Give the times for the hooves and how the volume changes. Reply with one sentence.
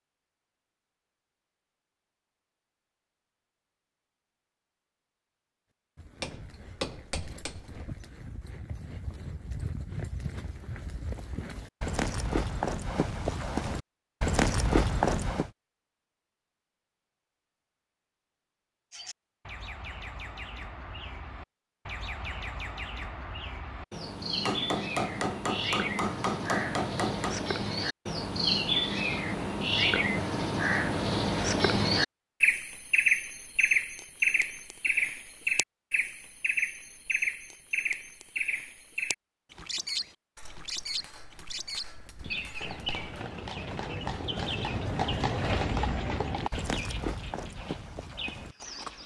You can hear the hooves from 6.0 to 15.5 s, getting louder; and from 42.0 to 49.0 s, getting louder then quieter.